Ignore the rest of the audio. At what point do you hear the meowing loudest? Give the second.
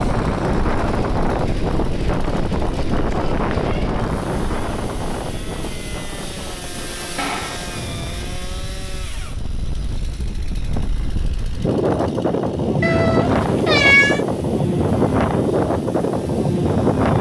14 s.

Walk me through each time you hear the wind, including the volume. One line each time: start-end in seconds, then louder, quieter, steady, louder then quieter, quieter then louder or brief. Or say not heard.
0.0-17.1 quieter then louder.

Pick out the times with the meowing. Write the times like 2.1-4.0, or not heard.
3.3-3.9, 7.2-7.7, 12.8-14.2.